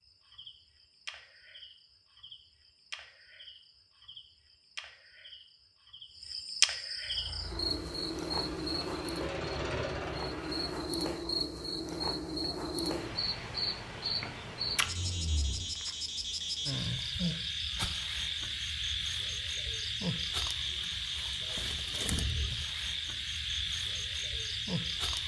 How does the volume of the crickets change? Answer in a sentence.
The loudness of the crickets goes up.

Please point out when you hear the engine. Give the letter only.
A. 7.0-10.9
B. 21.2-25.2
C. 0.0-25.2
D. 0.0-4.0
A.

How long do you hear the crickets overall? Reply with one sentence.
The crickets can be heard for 25 seconds in total.